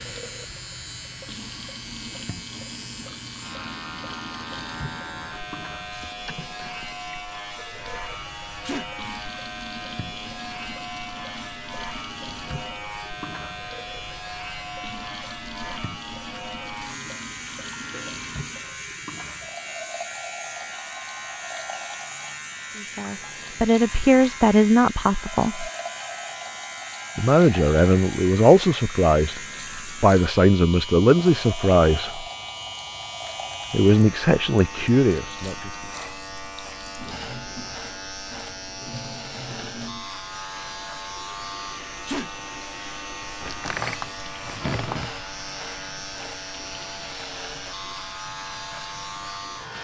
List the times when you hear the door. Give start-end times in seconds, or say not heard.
43.4-45.3.